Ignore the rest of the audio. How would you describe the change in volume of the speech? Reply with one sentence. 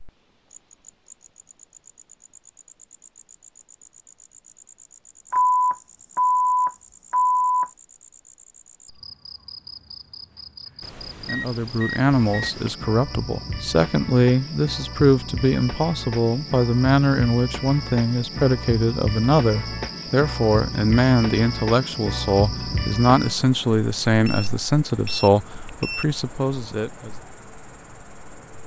The volume of the speech stays about the same.